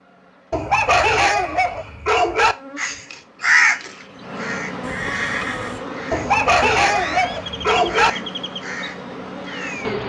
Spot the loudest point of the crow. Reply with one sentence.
The volume of the crow peaks at 4 seconds.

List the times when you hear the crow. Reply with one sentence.
The crow can be heard from 2.8 to 10.0 s.